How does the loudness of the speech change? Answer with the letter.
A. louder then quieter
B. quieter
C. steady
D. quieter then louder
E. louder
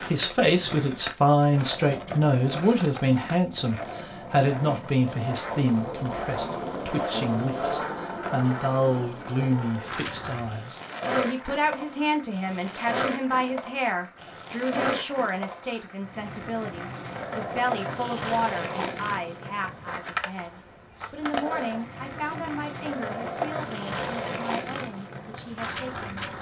B.